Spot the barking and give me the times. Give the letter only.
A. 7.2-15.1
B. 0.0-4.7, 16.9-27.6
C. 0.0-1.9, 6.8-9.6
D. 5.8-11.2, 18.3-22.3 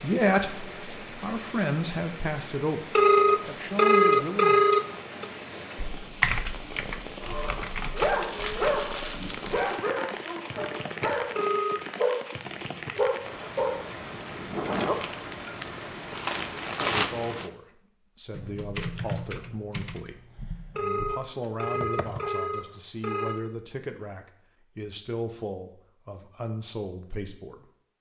A.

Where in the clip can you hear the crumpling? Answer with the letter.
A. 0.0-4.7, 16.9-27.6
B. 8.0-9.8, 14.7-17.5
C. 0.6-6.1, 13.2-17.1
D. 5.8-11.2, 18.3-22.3
B.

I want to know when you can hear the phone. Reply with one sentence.
You can hear the phone from 3.0 to 5.2 s, from 11.3 to 11.8 s and from 20.8 to 23.4 s.